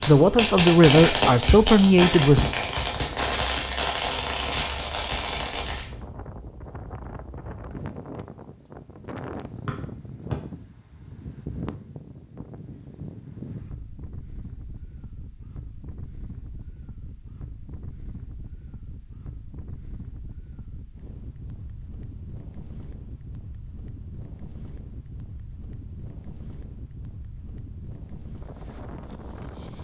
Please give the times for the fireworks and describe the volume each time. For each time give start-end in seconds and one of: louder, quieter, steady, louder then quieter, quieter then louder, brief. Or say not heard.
0.0-5.9 quieter.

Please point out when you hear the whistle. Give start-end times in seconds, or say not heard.
9.7-10.3.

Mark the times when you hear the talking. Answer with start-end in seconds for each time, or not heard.
0.1-2.5.